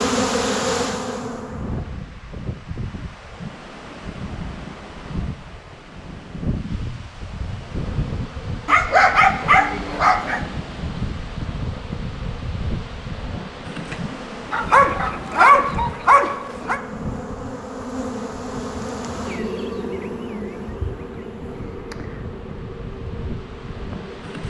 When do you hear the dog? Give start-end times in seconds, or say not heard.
8.7-10.4, 14.5-16.8.